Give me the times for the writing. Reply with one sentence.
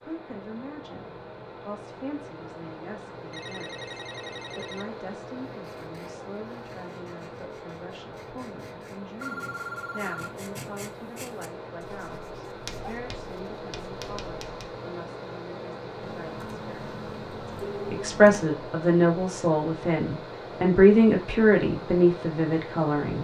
You can hear the writing from 5.5 to 14.8 s.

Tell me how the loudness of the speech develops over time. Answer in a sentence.
The loudness of the speech goes up.